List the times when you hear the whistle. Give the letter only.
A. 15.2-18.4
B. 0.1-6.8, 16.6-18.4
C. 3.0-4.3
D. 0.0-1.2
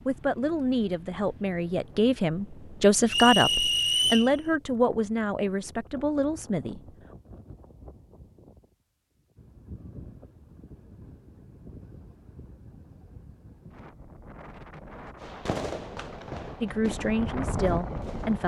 C.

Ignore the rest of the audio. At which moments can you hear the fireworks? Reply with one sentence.
You can hear the fireworks from 15.2 to 18.4 s.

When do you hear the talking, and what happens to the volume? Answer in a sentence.
You can hear the talking from 0.1 to 6.8 s, getting louder then quieter; and briefly from 16.6 to 18.4 s.